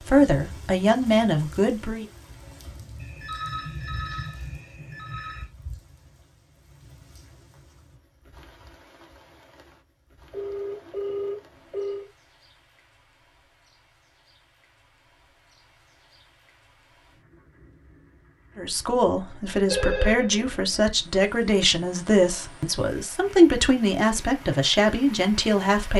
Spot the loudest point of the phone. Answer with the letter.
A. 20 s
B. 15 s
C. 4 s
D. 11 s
A.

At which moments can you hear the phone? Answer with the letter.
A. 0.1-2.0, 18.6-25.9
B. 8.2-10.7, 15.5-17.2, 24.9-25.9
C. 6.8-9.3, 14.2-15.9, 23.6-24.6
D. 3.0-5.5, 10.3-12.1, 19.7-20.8
D.